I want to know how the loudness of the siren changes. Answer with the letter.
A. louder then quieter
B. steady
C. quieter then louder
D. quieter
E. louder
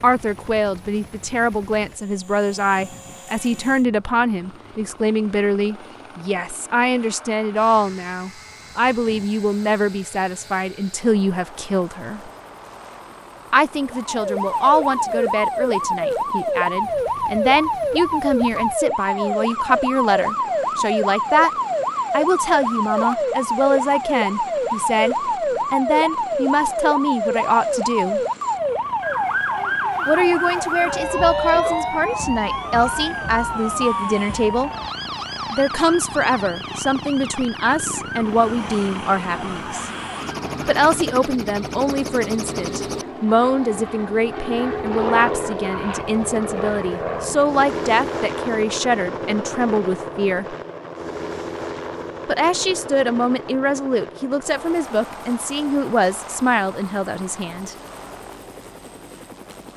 D.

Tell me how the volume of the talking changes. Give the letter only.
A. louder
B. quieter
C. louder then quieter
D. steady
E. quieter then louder
D.